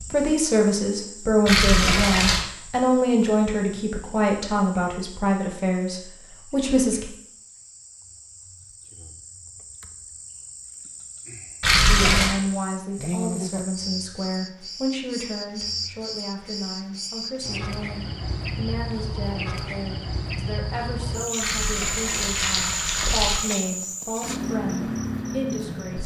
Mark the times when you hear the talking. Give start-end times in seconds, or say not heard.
0.1-7.0, 11.9-26.0.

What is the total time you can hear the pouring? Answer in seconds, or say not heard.
4 s.